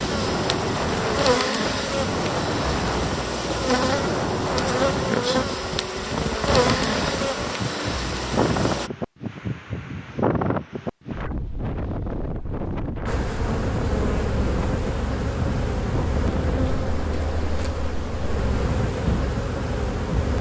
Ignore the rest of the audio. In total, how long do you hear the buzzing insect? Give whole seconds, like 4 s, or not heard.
16 s.